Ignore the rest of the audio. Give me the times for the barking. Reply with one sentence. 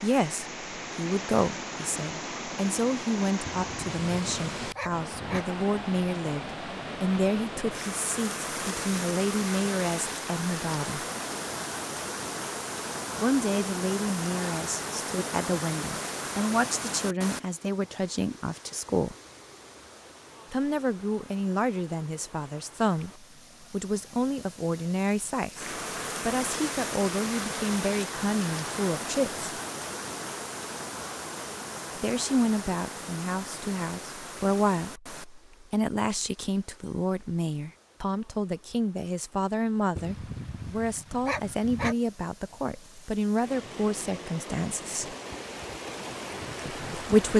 The barking can be heard from 3.5 to 5.5 s and from 40.0 to 42.0 s.